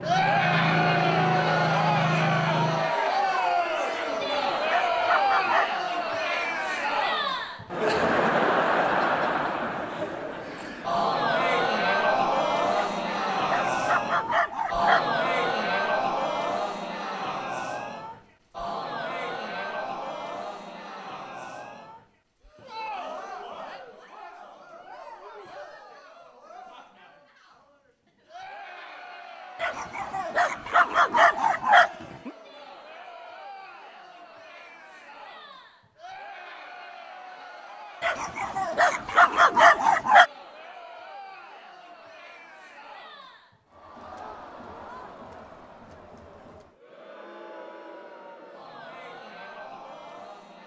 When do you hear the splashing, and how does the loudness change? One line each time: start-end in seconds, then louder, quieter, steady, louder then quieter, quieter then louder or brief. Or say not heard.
not heard.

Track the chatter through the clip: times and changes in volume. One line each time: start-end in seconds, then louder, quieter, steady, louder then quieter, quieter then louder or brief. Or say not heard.
0.0-50.6 quieter.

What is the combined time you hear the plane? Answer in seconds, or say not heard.
3 s.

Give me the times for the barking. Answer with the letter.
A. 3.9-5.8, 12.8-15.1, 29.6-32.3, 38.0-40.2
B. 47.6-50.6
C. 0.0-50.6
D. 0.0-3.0
A.